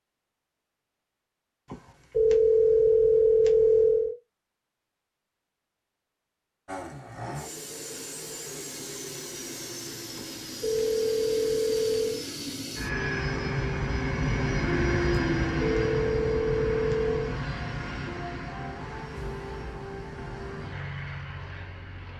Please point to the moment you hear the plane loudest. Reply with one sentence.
The volume of the plane peaks at 15 seconds.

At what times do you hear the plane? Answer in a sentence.
The plane can be heard from 6.7 to 22.1 s.